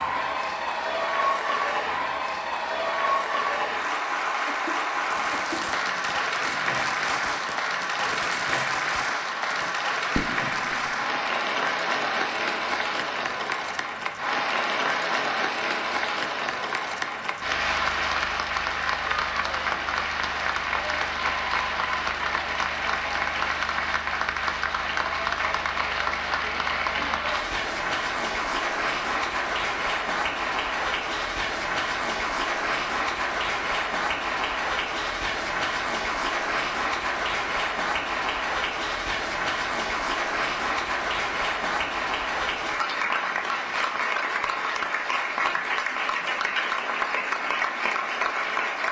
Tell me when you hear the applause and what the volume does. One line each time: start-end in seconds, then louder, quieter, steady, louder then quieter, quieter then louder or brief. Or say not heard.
0.0-48.8 steady.